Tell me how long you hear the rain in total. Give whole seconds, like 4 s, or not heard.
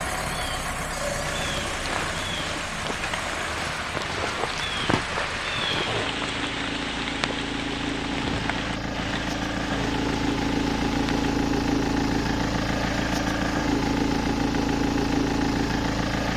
11 s.